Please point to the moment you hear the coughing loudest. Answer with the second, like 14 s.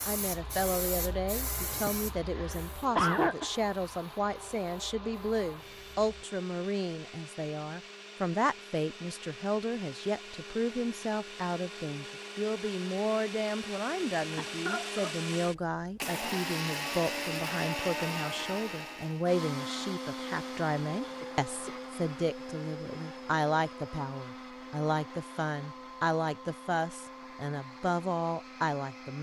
3 s.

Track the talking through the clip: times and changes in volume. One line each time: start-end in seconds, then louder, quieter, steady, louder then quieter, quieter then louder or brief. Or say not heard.
0.1-29.1 steady.